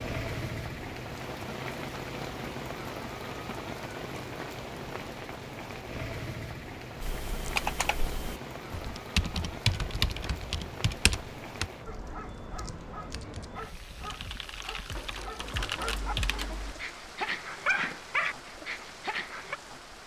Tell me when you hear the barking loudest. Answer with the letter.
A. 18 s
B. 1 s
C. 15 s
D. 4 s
A.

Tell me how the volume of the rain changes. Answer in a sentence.
The loudness of the rain goes down.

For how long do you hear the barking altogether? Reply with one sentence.
The barking can be heard for 8 seconds in total.